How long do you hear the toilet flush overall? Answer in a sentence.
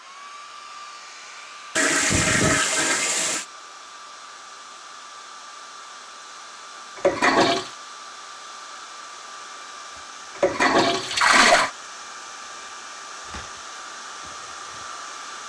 You can hear the toilet flush for 4 seconds altogether.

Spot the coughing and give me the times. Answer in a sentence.
The coughing can't be heard in this clip.